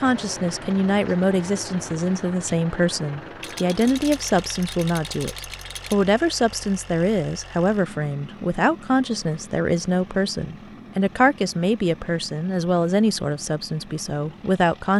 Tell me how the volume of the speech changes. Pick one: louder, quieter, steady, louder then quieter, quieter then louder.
steady.